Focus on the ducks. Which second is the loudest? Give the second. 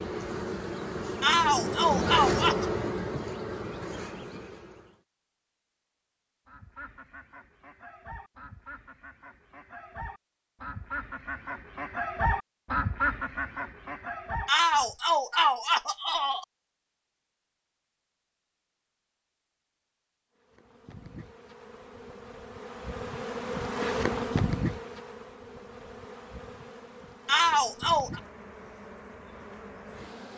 13 s.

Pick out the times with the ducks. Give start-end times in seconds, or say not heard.
6.5-14.9.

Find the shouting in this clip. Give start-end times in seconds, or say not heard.
1.2-2.7, 14.4-16.4, 27.2-28.2.